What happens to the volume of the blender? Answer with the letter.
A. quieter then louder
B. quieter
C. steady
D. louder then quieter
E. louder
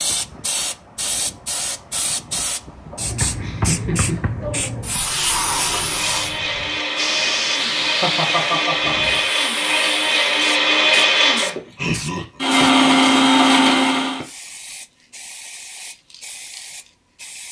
E.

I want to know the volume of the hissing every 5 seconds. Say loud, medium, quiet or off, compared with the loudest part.
loud, loud, medium, quiet.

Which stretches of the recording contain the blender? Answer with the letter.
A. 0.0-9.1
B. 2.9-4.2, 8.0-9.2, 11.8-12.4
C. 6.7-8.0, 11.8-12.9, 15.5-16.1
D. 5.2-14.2
D.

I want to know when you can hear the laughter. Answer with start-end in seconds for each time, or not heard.
2.9-4.2, 8.0-9.2, 11.8-12.4.